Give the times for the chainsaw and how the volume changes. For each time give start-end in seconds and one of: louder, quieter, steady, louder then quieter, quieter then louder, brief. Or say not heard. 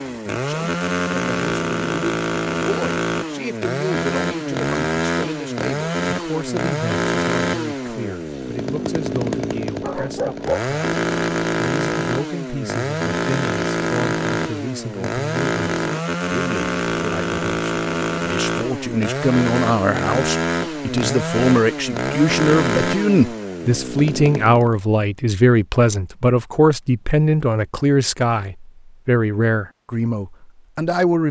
0.0-24.8 steady.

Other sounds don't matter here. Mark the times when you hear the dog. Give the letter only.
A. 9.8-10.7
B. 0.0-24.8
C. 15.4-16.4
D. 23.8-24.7
A.